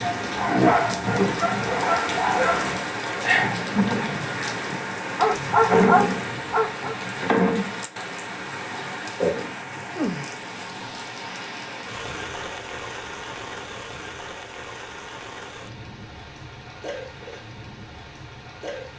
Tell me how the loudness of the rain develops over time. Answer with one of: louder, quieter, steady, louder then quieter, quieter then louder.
quieter.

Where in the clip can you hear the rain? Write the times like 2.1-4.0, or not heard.
0.0-18.9.